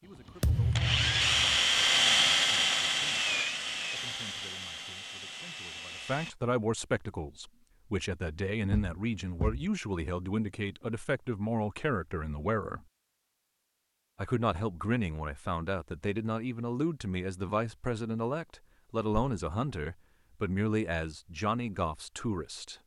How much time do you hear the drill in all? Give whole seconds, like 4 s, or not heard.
6 s.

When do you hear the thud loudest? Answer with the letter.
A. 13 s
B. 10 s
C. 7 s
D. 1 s
D.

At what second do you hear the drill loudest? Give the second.
2 s.